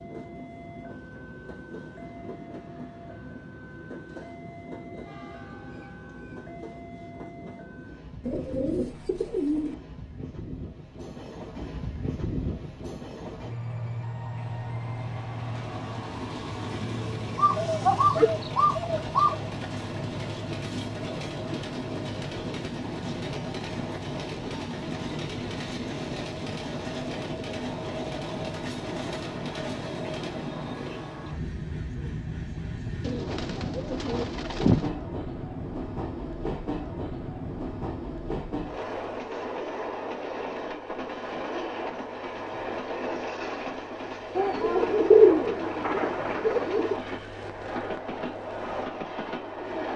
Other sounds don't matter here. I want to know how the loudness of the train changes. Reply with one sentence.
The loudness of the train goes up.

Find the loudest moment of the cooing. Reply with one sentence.
The loudest moment of the cooing is at 45 seconds.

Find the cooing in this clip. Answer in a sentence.
You can hear the cooing from 8.2 to 9.8 s, from 17.4 to 19.4 s, from 33.0 to 34.9 s and from 44.4 to 47.0 s.